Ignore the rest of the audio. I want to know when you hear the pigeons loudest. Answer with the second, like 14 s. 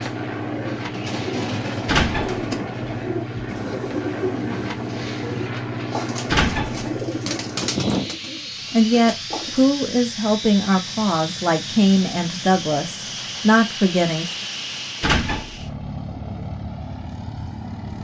8 s.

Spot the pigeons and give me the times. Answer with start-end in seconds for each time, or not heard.
0.0-9.7.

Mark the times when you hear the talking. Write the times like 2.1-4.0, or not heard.
8.7-14.3.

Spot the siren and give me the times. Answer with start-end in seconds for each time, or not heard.
not heard.